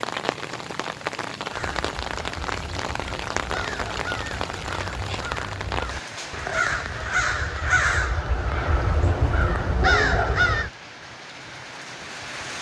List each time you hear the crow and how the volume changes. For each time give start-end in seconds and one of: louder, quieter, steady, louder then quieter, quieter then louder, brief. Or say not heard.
1.5-10.7 louder.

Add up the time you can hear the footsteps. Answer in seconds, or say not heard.
not heard.